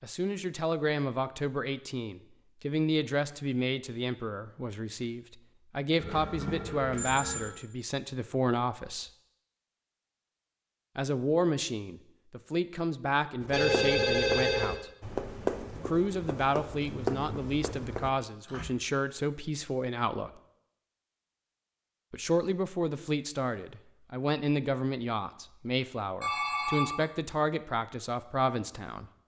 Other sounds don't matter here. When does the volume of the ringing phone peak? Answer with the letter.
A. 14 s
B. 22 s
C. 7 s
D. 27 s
A.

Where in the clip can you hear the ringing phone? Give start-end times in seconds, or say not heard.
6.0-7.5, 13.5-14.8, 26.2-26.9.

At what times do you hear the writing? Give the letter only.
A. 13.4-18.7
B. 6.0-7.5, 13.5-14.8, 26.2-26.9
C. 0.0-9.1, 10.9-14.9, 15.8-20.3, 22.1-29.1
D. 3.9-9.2
A.